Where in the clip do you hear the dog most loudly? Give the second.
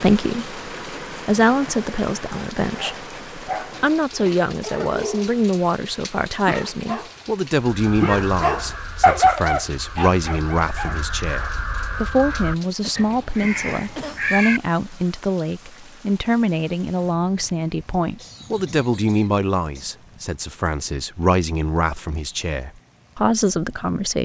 9 s.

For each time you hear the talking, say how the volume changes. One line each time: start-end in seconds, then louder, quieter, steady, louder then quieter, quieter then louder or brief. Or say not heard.
0.0-24.2 steady.